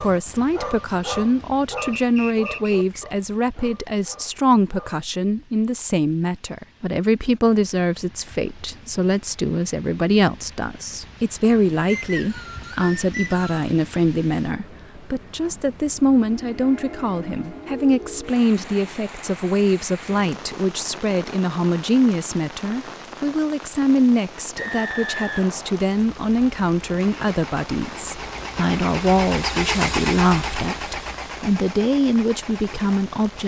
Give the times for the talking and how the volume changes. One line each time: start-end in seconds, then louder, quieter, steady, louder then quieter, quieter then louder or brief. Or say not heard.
0.0-33.4 steady.